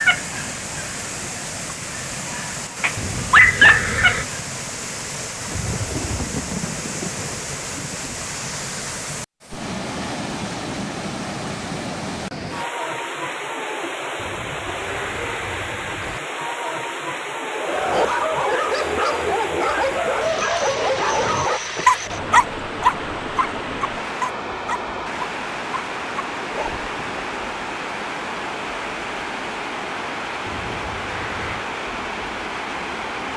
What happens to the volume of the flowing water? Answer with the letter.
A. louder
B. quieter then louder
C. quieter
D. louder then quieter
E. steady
E.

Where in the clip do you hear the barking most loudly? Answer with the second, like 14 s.
4 s.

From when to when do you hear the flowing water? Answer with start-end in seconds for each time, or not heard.
0.0-33.3.